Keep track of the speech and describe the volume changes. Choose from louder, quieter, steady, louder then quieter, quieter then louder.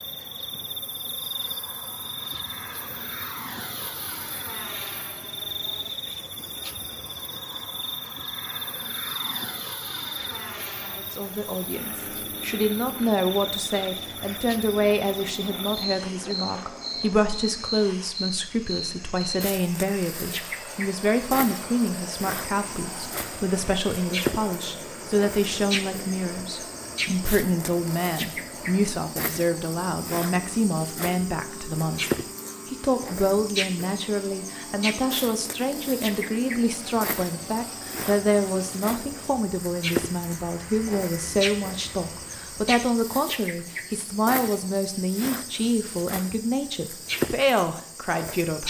steady.